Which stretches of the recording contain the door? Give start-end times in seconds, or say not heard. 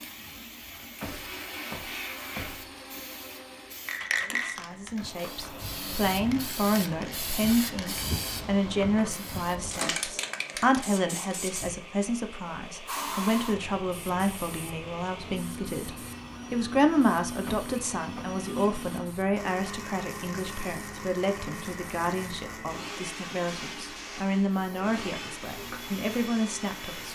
1.0-3.0, 17.4-18.3.